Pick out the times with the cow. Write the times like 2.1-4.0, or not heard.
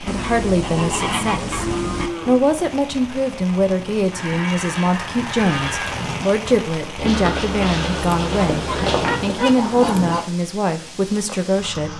0.8-2.5, 4.2-6.0, 8.6-10.2.